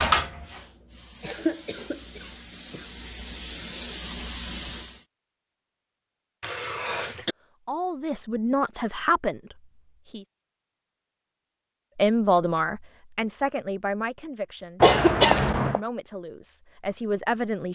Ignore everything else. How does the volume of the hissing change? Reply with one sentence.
The volume of the hissing goes up.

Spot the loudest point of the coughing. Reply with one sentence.
The volume of the coughing peaks at 15 seconds.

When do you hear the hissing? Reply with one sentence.
You can hear the hissing from 0.0 to 5.0 s.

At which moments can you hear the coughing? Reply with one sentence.
The coughing can be heard from 1.2 to 2.9 s, from 6.4 to 7.3 s and from 14.8 to 15.8 s.